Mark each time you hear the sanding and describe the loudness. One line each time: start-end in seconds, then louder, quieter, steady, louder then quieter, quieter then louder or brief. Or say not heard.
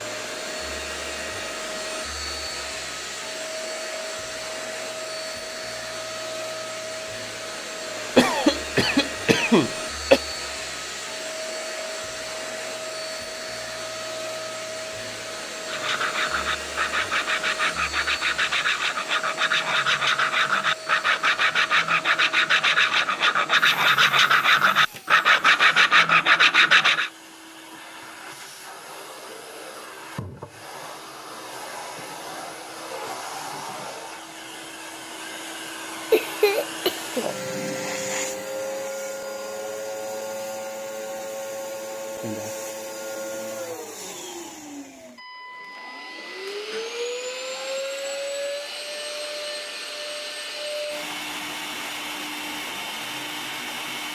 15.7-27.1 louder.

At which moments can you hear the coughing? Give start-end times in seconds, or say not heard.
8.2-10.2, 36.1-37.2.